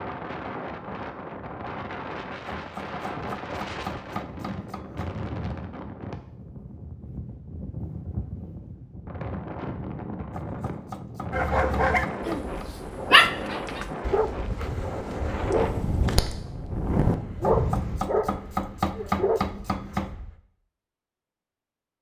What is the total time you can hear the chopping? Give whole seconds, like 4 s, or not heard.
8 s.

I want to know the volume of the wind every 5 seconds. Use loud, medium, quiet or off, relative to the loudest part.
medium, medium, medium, loud, off.